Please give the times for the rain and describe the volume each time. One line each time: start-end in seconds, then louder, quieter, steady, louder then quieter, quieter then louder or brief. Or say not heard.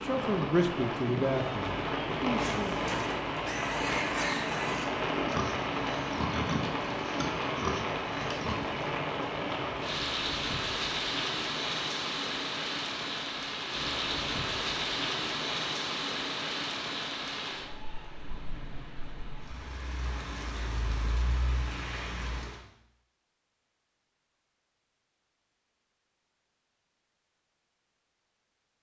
0.0-22.6 quieter.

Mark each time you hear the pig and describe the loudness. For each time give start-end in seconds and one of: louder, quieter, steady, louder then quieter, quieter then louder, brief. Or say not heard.
2.4-8.6 steady.